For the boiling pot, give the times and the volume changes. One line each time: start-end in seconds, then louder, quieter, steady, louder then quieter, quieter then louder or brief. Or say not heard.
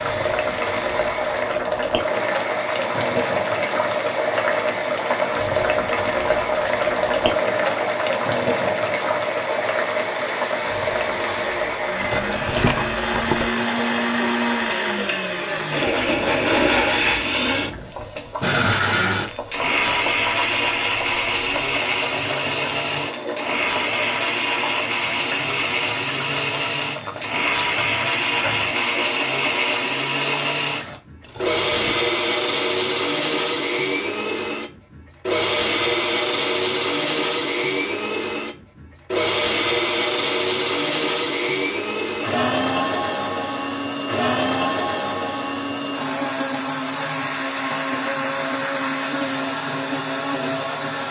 0.0-31.0 quieter.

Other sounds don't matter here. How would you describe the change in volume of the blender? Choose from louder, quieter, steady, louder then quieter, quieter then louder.
louder.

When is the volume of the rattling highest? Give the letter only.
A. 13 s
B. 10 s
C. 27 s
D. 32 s
A.